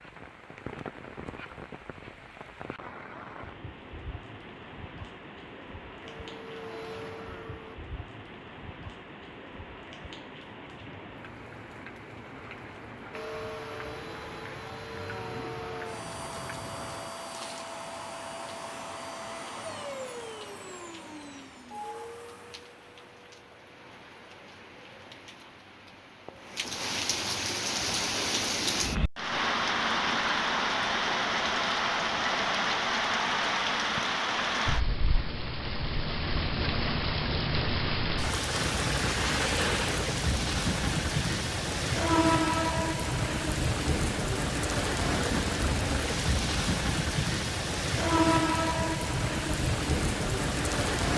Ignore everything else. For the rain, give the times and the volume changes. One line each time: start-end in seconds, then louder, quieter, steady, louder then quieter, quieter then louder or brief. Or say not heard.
0.0-51.1 louder.